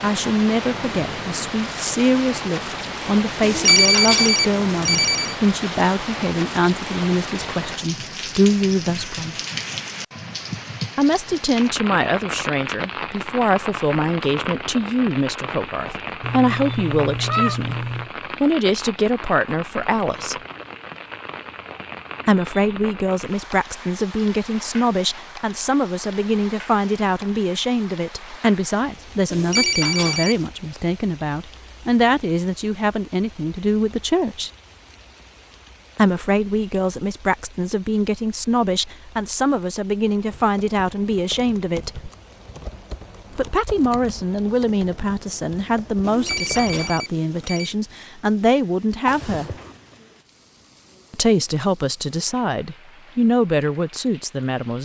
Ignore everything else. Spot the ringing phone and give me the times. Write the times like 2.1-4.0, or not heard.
3.4-5.3, 29.3-30.4, 46.0-47.8.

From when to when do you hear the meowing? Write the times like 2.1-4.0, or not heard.
16.2-18.1, 49.0-49.8.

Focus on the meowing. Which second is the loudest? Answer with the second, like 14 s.
17 s.